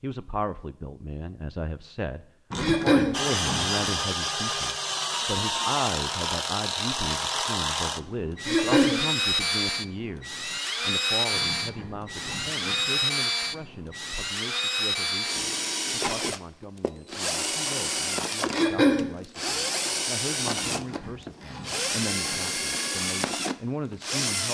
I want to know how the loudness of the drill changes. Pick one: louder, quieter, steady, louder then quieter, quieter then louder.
steady.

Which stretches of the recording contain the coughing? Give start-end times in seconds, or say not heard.
2.6-3.1, 8.4-9.0, 18.5-19.1.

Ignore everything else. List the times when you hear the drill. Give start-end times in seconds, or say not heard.
3.1-24.5.